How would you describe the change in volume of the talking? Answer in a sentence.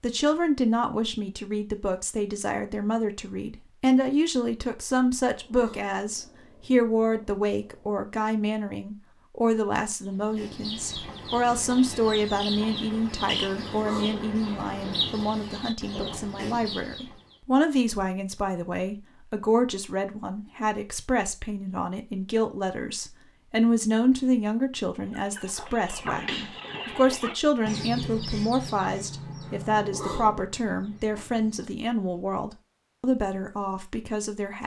The volume of the talking stays about the same.